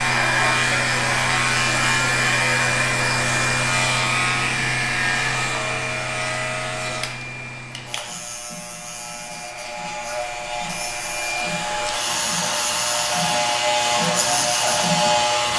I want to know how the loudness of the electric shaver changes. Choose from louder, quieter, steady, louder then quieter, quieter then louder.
quieter then louder.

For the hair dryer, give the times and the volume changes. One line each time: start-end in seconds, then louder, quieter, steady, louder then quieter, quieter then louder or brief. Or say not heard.
0.0-15.5 quieter then louder.